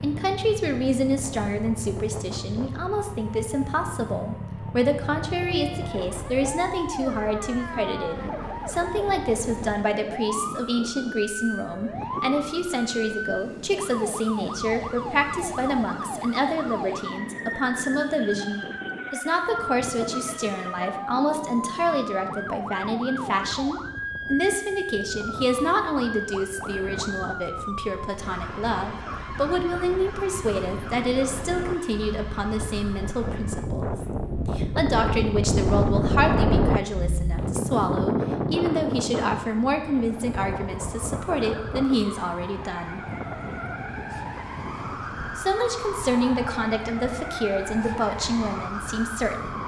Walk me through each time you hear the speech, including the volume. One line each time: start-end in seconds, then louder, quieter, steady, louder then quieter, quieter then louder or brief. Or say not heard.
0.0-43.0 steady
45.4-49.6 quieter.